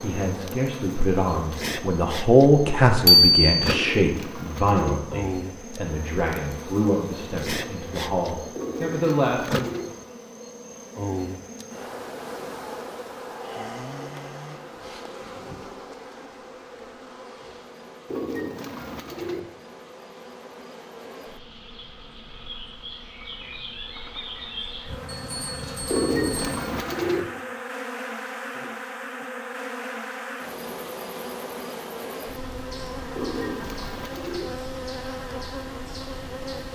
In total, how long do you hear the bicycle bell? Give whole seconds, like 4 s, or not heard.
2 s.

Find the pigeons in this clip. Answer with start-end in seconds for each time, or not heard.
3.6-5.0, 8.6-9.9, 18.1-19.5, 25.9-27.3, 33.1-34.5.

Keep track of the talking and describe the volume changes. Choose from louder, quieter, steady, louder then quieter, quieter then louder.
louder then quieter.